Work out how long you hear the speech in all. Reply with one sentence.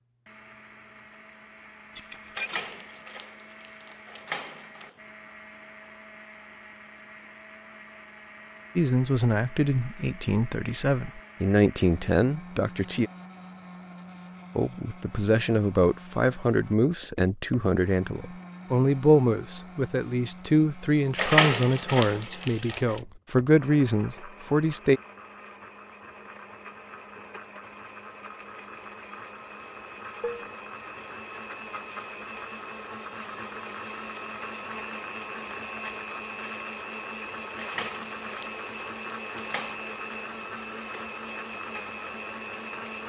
You can hear the speech for 15 seconds altogether.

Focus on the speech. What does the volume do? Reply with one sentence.
The loudness of the speech stays about the same.